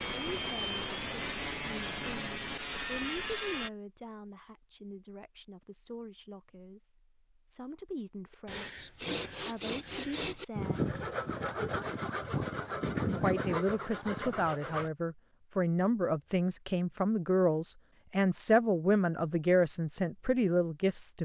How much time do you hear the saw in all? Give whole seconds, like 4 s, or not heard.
10 s.